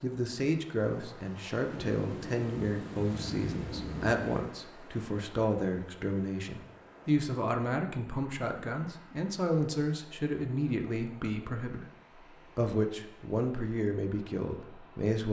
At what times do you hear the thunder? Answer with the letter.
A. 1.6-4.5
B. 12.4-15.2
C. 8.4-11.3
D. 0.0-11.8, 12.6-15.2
A.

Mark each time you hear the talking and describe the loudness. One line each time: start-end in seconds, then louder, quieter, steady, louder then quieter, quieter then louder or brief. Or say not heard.
0.0-11.8 steady
12.6-15.2 brief.